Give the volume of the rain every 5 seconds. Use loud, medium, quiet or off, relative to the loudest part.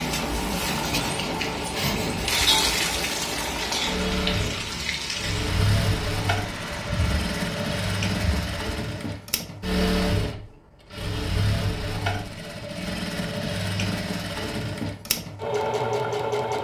loud, medium, off, off.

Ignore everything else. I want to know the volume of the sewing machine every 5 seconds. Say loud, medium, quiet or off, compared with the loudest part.
medium, loud, loud, loud.